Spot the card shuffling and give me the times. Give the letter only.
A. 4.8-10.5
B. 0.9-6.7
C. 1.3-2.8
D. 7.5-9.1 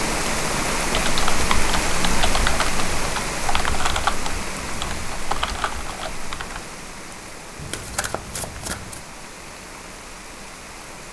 D.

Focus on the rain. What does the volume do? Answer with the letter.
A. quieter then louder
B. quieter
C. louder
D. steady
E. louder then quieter
B.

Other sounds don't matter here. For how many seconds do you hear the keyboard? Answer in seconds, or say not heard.
6 s.